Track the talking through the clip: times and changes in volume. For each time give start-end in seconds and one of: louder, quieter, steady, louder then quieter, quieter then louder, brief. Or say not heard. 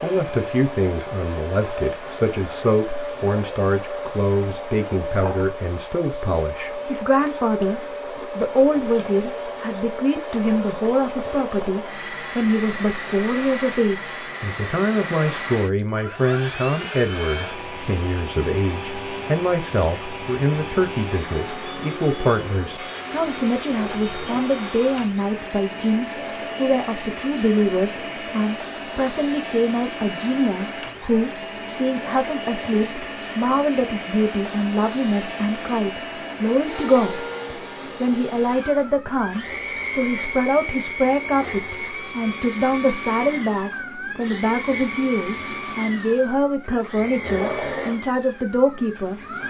0.0-49.2 steady.